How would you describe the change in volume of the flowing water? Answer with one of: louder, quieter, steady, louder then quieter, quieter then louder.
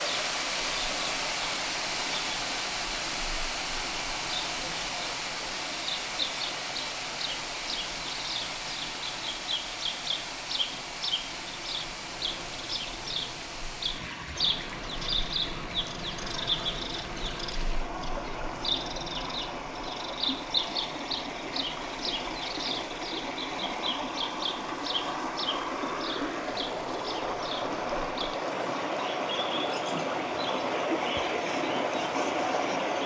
quieter then louder.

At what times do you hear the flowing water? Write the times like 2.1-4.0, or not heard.
0.0-33.0.